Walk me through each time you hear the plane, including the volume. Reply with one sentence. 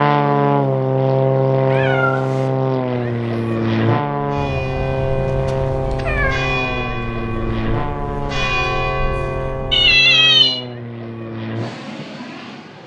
You can hear the plane from 0.0 to 12.8 s, getting quieter.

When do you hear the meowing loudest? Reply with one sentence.
The loudest moment of the meowing is at 10 seconds.